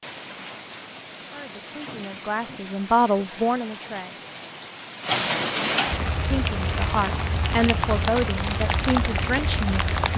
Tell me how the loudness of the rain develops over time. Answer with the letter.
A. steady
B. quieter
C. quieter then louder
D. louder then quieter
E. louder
E.